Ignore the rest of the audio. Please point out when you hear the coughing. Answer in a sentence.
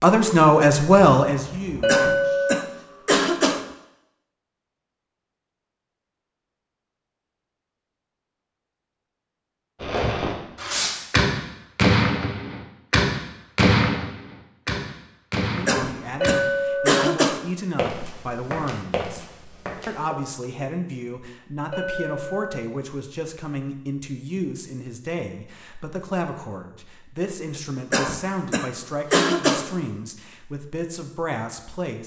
You can hear the coughing from 1.9 to 3.6 s, from 15.7 to 17.4 s and from 27.9 to 29.7 s.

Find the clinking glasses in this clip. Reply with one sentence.
The clinking glasses can be heard from 1.8 to 2.6 s, from 16.2 to 17.0 s and from 21.7 to 22.8 s.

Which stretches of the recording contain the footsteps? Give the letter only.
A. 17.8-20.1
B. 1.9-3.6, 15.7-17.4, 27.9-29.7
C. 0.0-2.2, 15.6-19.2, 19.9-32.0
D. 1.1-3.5
A.